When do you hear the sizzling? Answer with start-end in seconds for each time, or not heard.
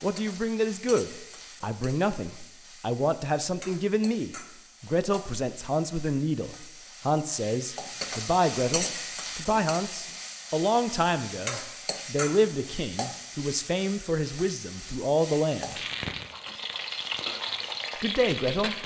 0.0-18.8.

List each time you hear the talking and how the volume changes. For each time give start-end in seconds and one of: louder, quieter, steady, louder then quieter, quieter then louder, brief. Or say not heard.
0.0-15.8 steady
18.0-18.8 brief.